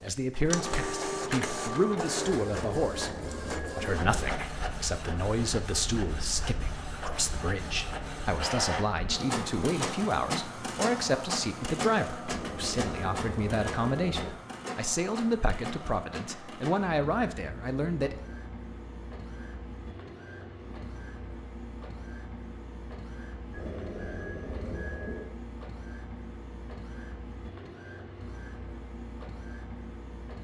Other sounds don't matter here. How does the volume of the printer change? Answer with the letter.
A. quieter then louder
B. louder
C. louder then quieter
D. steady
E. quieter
E.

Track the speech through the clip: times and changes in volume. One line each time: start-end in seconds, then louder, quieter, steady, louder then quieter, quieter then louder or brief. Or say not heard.
0.0-18.1 steady.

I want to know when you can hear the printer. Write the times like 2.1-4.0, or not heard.
0.0-30.4.